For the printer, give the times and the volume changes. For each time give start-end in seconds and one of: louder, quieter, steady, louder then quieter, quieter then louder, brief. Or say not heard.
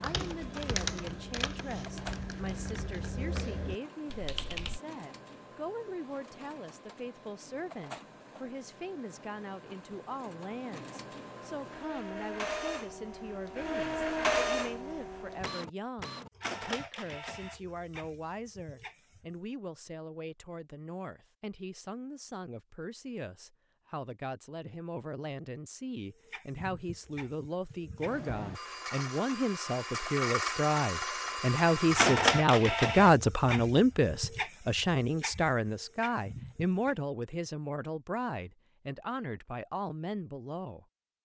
0.2-19.4 louder then quieter
26.1-37.0 louder then quieter.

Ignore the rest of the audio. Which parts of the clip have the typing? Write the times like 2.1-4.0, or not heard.
0.0-4.8.